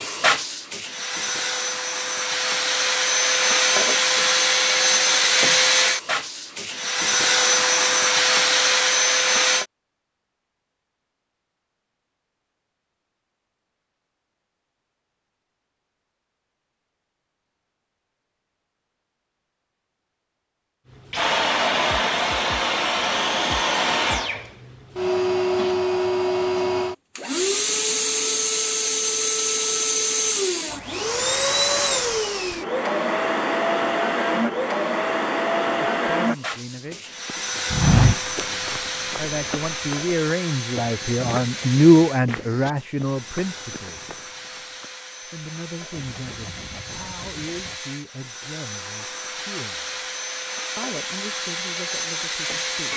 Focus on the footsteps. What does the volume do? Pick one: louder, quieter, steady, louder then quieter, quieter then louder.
quieter.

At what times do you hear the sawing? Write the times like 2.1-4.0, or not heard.
46.0-47.8.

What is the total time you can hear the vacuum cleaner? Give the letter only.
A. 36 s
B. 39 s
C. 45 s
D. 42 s
D.